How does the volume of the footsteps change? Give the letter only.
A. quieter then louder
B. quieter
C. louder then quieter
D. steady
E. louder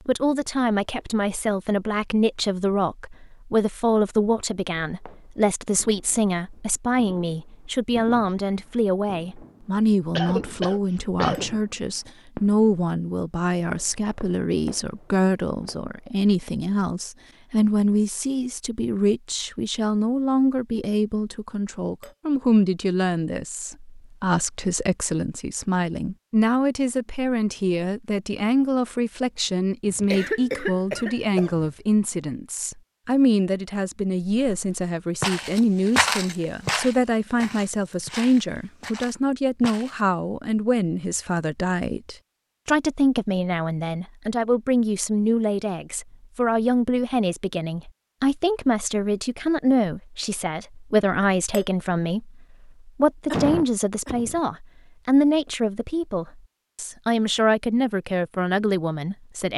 C.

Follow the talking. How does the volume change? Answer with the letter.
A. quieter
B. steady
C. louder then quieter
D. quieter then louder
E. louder
B.